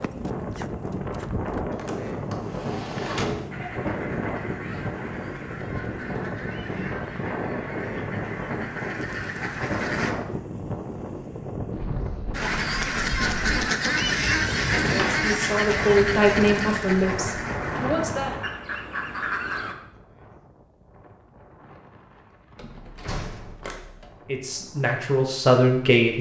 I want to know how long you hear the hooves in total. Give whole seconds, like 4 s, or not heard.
2 s.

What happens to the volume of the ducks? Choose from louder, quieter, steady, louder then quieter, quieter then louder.
louder then quieter.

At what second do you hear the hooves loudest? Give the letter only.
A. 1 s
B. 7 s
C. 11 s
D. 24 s
A.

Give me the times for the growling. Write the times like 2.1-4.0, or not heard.
not heard.